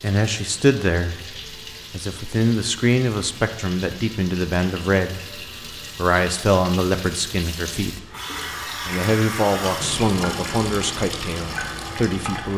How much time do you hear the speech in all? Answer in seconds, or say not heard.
11 s.